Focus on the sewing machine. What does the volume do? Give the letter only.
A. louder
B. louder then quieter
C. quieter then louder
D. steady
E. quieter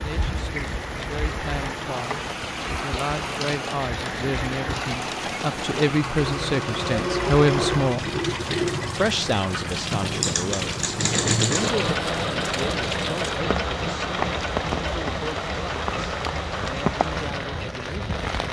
B.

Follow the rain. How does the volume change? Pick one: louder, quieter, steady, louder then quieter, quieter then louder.
steady.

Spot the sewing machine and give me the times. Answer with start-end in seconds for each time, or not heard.
0.2-18.4.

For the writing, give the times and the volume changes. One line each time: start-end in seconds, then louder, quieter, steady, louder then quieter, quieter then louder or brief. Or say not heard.
not heard.